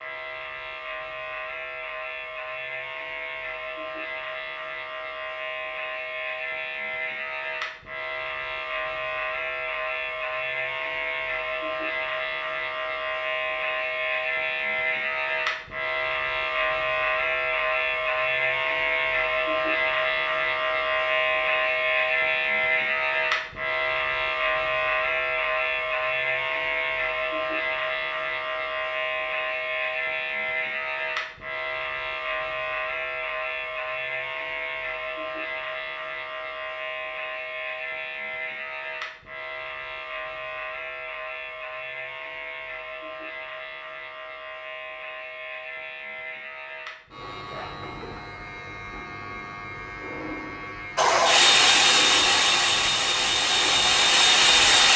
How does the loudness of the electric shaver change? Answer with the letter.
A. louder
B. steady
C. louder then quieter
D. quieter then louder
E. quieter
C.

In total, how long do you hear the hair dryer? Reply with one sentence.
The hair dryer can be heard for 4 seconds in total.